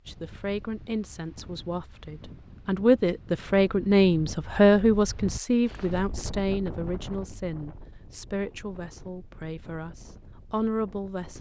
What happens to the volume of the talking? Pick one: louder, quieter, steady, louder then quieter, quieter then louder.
louder then quieter.